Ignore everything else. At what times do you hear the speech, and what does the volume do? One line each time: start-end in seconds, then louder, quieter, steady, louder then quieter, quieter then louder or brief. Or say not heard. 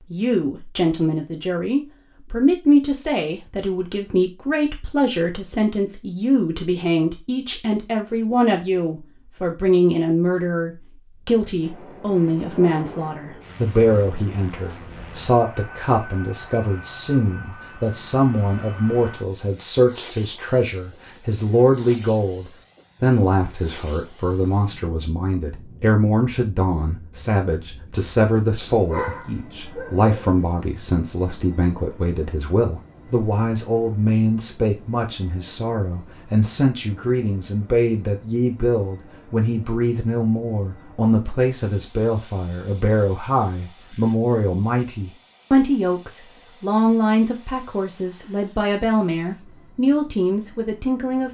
0.1-51.2 steady.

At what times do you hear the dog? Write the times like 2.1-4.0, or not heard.
28.9-30.4.